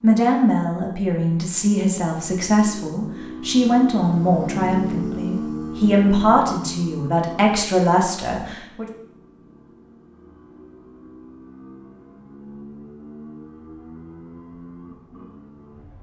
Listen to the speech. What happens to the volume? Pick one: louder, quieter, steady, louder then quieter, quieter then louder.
steady.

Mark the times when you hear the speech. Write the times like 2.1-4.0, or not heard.
0.0-8.8.